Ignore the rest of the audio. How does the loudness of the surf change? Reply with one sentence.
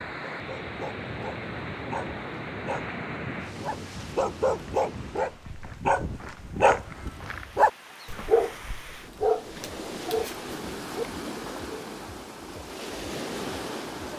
The loudness of the surf goes down, then up.